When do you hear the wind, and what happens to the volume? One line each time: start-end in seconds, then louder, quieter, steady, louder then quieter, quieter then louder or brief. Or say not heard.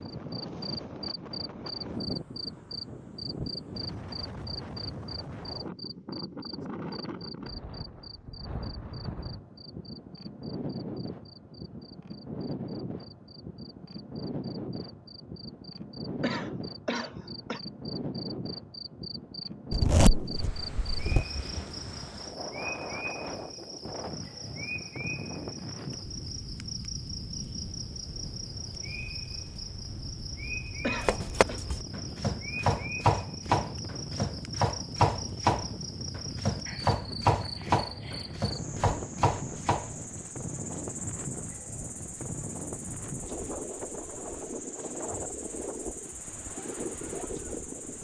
0.0-47.9 steady.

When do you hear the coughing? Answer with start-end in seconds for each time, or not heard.
16.2-17.6, 30.8-31.6.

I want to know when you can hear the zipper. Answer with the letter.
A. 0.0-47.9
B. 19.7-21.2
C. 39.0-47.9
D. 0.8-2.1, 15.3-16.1
B.